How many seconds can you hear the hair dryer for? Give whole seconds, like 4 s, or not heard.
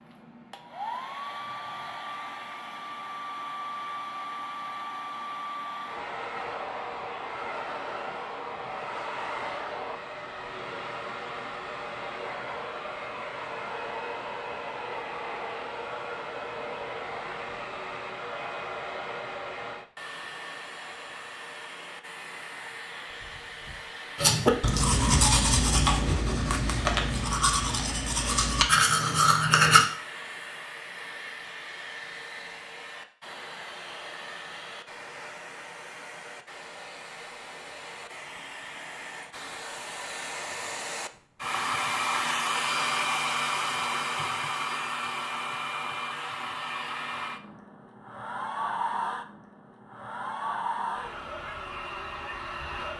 53 s.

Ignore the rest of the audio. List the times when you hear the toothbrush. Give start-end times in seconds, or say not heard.
24.1-29.9.